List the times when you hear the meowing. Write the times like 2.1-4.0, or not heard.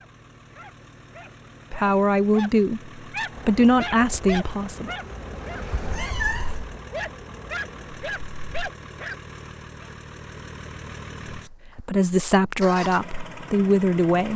5.7-6.8.